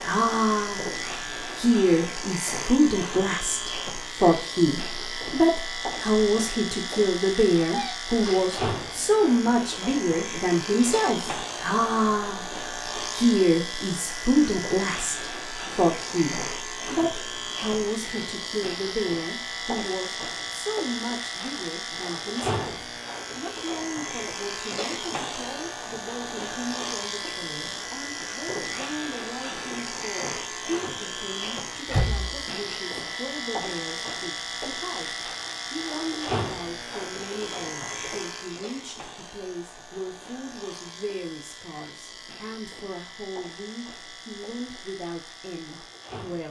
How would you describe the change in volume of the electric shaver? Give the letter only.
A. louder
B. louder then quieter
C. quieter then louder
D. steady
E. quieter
E.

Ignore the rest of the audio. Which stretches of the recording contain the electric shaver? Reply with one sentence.
You can hear the electric shaver from 0.0 to 46.4 s.